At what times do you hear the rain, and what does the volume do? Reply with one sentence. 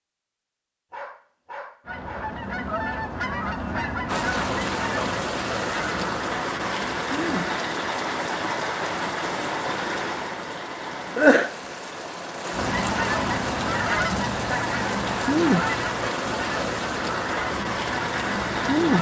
The rain can be heard from 4.0 to 18.9 s, at a steady volume.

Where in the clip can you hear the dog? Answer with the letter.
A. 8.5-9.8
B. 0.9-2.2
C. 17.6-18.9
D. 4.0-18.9
B.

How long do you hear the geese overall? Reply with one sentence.
The geese can be heard for 12 seconds in total.